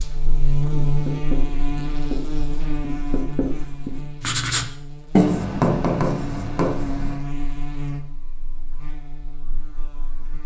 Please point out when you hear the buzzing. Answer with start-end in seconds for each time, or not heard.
0.0-10.4.